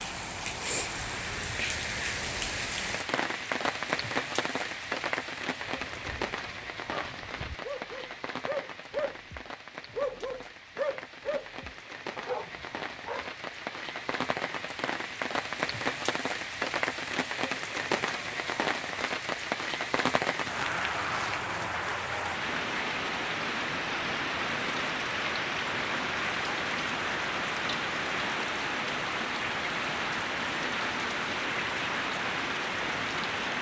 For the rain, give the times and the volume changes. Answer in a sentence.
You can hear the rain from 0.0 to 33.5 s, getting quieter then louder.